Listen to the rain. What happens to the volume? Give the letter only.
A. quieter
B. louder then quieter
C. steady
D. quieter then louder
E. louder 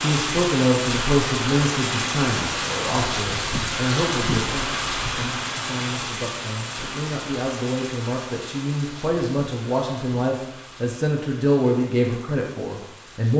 A.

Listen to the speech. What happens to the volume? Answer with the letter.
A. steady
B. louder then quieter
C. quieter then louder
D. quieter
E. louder
C.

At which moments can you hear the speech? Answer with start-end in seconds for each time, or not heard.
0.0-13.3.